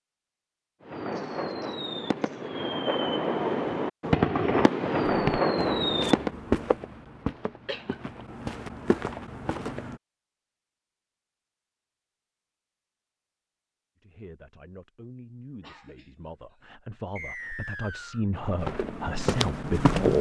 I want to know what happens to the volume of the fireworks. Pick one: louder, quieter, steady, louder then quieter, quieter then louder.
louder.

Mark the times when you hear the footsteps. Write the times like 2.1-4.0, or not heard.
5.0-9.9, 18.3-20.1.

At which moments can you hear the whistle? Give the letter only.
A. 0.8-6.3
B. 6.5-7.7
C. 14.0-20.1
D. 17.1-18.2
D.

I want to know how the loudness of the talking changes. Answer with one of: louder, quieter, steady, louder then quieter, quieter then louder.
louder.